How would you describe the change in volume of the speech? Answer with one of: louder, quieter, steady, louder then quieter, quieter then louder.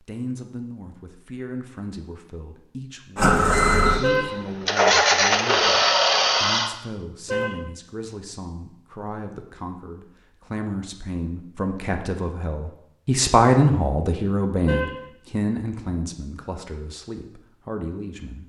louder then quieter.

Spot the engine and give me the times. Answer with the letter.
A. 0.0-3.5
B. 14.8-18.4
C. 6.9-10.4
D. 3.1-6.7
D.